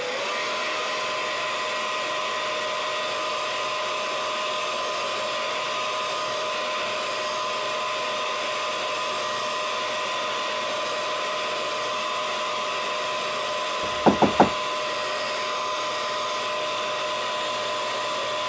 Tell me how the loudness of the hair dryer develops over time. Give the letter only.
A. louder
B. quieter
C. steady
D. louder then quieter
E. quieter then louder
C.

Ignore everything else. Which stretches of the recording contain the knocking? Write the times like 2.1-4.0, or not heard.
13.8-14.6.